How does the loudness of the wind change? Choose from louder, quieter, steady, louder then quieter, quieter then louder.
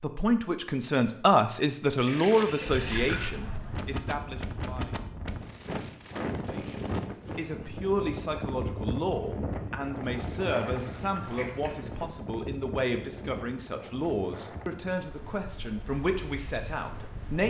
quieter.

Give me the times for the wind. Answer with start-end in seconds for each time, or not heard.
2.6-17.4.